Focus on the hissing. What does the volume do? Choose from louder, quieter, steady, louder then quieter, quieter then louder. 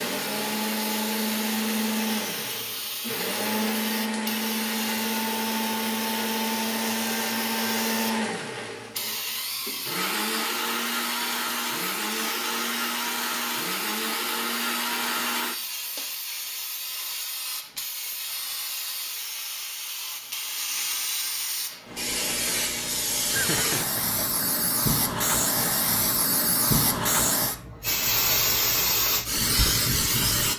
louder.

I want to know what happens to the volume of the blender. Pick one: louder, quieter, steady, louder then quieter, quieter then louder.
steady.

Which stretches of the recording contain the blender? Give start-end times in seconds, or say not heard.
0.0-16.1.